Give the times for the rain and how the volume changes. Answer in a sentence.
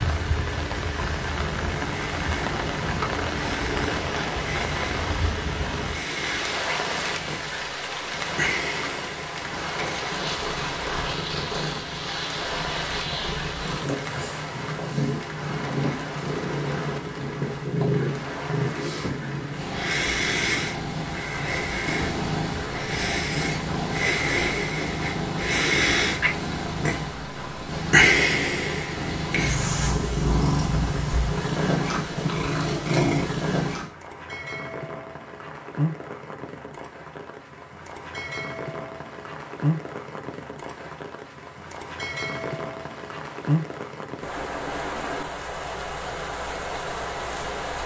The rain can be heard from 0.0 to 47.8 s, getting quieter then louder.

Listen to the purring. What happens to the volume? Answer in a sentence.
The volume of the purring goes up.